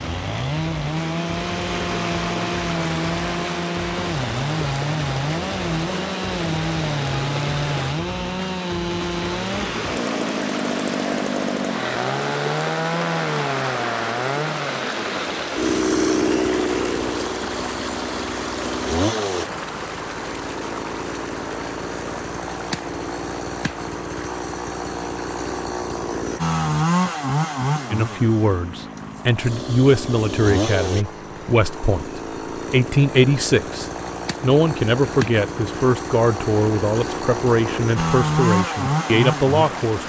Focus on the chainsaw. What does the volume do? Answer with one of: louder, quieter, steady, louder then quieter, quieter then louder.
steady.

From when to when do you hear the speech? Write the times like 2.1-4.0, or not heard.
27.9-40.0.